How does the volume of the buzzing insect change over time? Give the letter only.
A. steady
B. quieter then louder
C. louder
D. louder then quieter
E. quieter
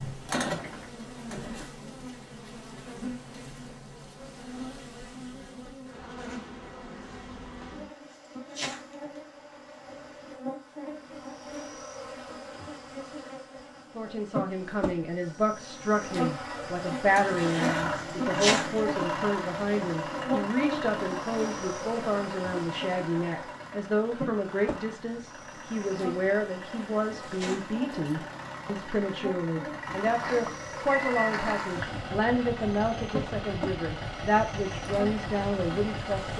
D.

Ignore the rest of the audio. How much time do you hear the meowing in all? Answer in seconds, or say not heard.
2 s.